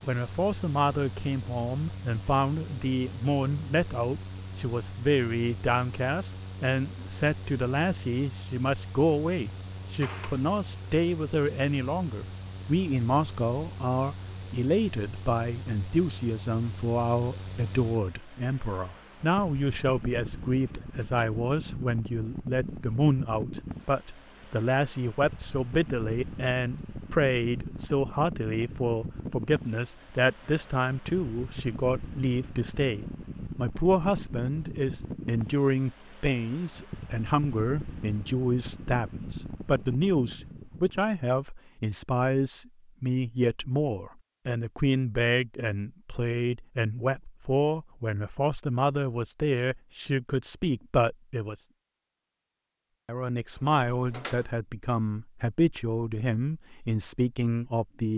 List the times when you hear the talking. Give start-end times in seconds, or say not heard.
0.0-51.5, 53.0-58.1.